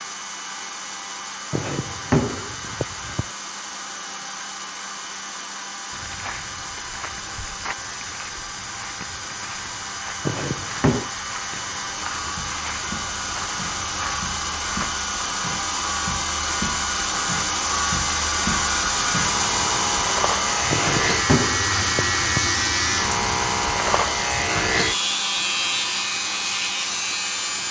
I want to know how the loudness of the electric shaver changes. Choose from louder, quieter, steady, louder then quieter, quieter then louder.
louder.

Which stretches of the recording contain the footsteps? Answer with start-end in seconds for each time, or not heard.
5.9-14.9.